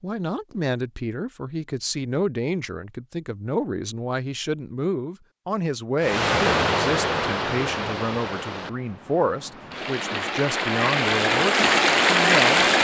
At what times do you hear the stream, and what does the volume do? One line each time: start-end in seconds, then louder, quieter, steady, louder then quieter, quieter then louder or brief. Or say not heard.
6.0-12.7 quieter then louder.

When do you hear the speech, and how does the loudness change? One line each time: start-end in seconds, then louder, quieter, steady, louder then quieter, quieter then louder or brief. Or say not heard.
0.0-12.7 steady.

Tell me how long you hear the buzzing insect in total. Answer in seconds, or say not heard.
not heard.